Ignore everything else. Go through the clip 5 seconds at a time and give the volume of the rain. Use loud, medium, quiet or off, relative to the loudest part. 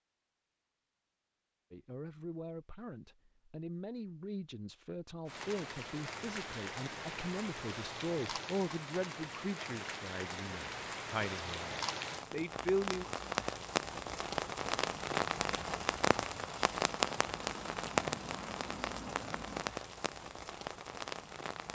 off, medium, loud, loud, medium.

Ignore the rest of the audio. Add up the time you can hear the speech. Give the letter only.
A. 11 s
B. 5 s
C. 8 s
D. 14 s
A.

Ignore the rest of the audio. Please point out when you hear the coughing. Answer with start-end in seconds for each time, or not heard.
not heard.